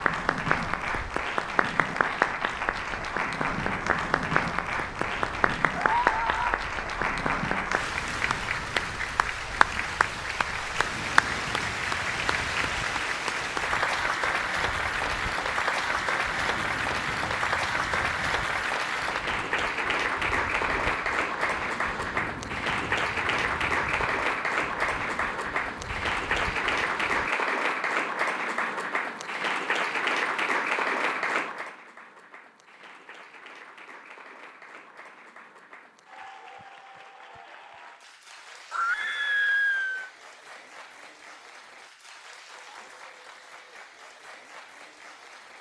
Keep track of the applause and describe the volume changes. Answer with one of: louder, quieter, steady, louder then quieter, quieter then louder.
quieter.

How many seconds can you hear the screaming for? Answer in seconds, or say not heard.
2 s.